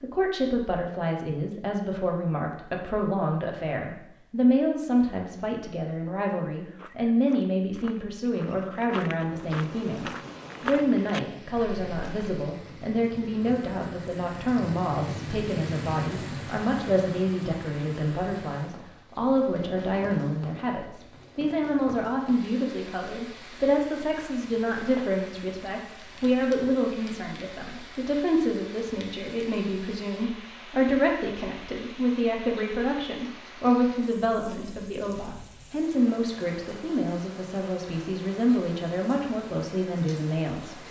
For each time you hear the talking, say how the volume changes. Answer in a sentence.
The talking can be heard from 0.0 to 40.8 s, at a steady volume.